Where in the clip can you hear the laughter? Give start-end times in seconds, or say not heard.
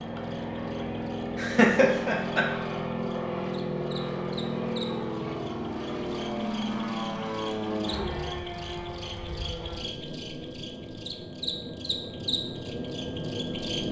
1.4-2.5.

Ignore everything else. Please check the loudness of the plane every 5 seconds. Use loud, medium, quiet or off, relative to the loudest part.
loud, loud, medium.